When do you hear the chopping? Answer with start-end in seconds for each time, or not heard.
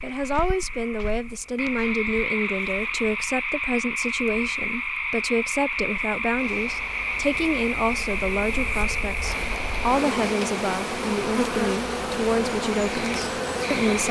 not heard.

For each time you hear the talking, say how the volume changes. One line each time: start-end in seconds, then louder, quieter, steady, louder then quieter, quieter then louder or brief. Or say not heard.
0.0-14.0 steady.